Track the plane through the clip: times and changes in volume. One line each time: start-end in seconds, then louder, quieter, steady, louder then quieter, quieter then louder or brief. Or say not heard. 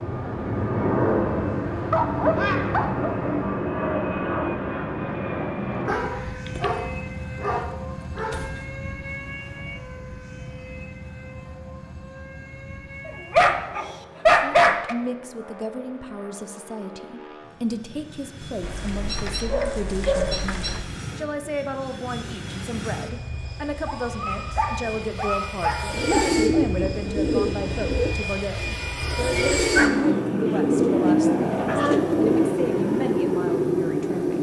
0.0-34.3 quieter then louder.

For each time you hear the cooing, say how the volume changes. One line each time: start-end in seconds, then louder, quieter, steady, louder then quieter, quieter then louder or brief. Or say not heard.
25.9-32.6 quieter then louder.